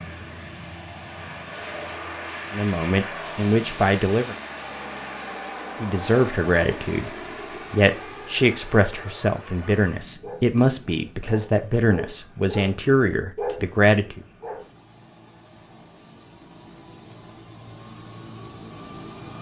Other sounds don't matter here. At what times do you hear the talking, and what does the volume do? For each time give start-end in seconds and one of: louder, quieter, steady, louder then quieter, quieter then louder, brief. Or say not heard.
2.5-4.3 brief
5.8-14.2 steady.